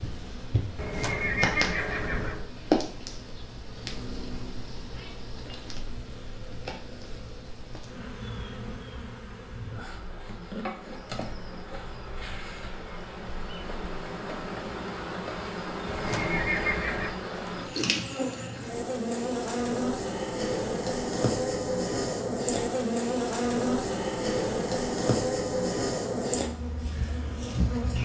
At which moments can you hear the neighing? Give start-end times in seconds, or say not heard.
0.8-2.5, 15.8-17.1.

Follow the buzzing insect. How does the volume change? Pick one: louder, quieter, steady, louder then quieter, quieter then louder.
quieter then louder.